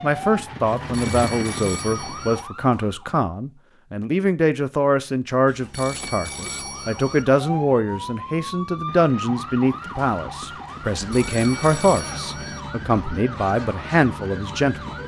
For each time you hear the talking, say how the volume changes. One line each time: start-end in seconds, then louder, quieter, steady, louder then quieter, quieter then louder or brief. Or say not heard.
0.0-14.9 steady.